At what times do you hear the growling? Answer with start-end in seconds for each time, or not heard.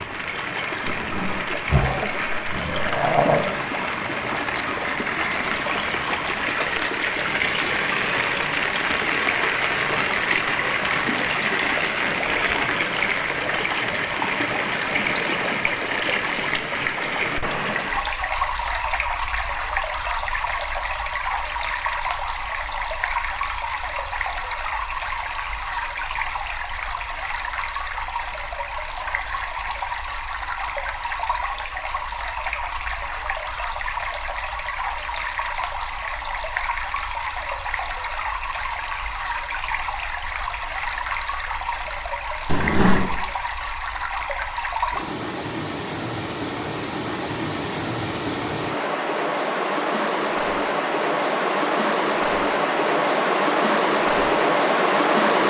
0.8-3.5, 42.5-43.2.